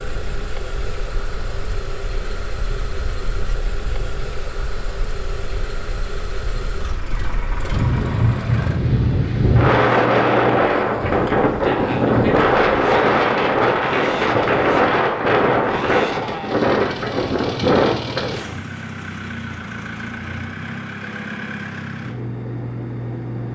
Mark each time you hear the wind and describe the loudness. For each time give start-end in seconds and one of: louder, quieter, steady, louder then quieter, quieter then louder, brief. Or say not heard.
0.0-18.5 louder.